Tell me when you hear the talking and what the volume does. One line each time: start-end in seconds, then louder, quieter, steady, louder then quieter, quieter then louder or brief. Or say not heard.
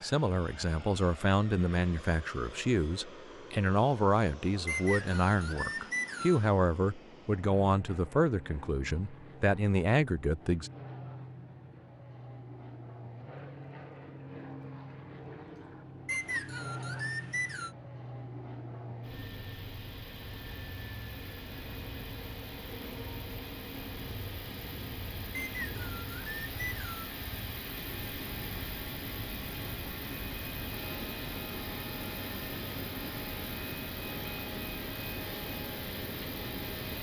0.0-10.7 steady.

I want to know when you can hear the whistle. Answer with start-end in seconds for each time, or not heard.
4.7-6.5, 16.1-17.7, 25.3-27.1.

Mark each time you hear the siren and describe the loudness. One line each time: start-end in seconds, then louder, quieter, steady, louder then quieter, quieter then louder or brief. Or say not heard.
not heard.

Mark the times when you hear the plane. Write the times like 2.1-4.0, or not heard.
0.0-36.9.